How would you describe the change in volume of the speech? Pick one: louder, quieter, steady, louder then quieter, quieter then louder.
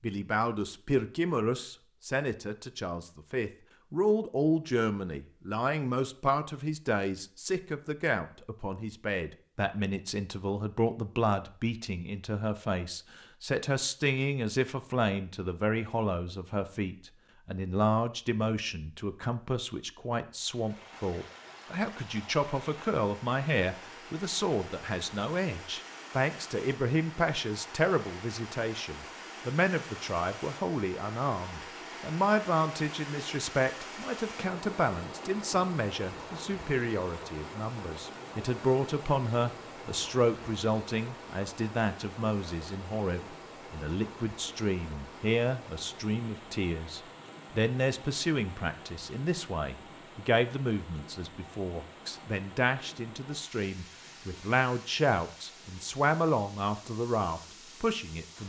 steady.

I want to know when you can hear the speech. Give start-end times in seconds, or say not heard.
0.0-58.4.